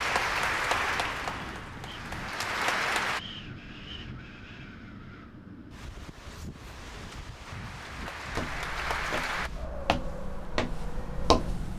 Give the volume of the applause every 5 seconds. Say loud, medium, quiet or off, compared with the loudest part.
loud, medium, off.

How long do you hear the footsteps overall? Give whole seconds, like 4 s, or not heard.
3 s.